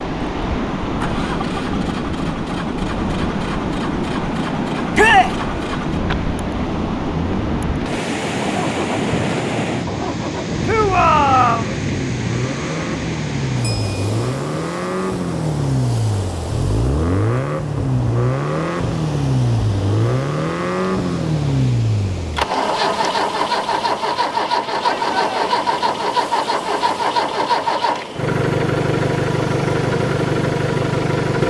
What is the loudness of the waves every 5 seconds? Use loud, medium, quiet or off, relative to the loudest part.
loud, loud, loud, medium, medium, medium, medium.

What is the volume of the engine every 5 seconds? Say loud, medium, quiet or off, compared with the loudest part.
quiet, medium, medium, loud, loud, loud, loud.